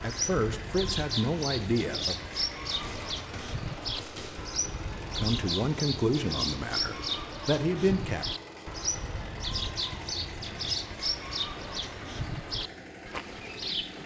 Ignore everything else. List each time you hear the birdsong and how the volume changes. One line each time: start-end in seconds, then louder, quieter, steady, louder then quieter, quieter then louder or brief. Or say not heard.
0.0-14.0 steady.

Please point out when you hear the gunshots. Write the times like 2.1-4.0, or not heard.
2.6-4.6.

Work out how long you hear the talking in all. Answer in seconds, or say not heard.
5 s.